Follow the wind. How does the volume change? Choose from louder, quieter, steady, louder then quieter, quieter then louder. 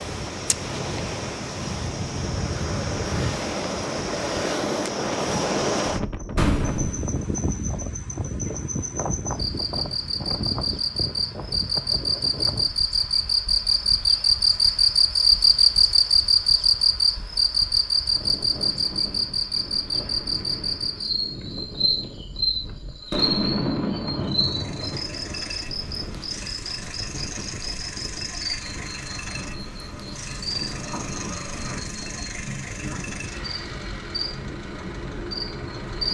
quieter.